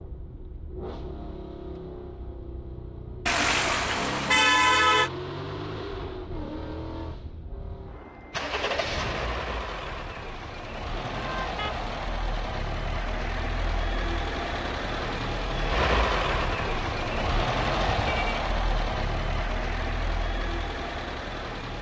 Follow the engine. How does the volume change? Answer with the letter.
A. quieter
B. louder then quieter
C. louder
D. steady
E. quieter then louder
C.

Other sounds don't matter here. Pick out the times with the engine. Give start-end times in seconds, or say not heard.
0.0-21.7.